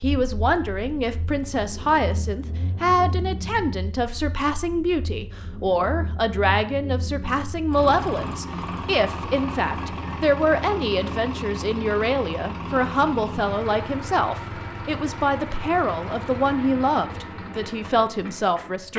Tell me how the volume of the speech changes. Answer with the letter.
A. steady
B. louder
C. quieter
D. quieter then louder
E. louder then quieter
A.